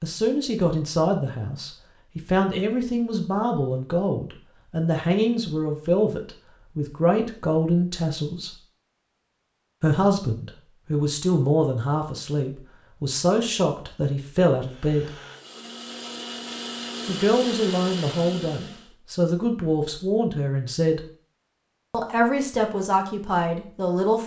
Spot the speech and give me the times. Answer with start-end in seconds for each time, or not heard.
0.0-8.6, 9.8-15.1, 17.1-21.0, 21.9-24.2.